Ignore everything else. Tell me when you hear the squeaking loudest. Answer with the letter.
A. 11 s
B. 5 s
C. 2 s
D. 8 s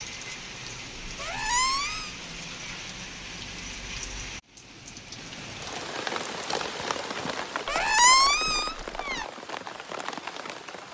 D.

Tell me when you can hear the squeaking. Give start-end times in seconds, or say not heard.
1.1-2.1, 7.7-9.2.